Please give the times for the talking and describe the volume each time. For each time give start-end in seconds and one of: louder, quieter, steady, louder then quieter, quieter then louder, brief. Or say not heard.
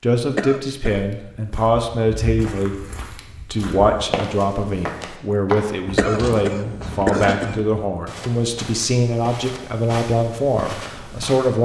0.0-11.5 steady.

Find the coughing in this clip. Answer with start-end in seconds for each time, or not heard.
0.3-1.1, 6.0-7.5.